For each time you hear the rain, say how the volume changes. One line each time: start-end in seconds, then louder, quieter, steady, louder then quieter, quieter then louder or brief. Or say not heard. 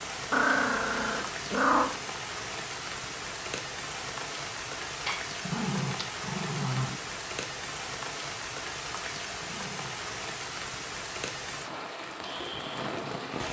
0.0-13.4 steady.